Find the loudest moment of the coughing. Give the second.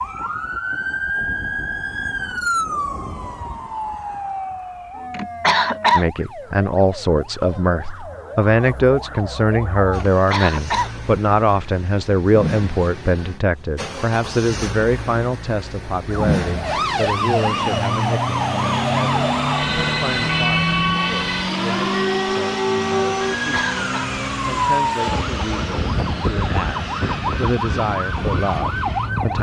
6 s.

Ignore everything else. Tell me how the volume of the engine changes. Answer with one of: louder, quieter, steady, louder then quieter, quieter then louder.
louder then quieter.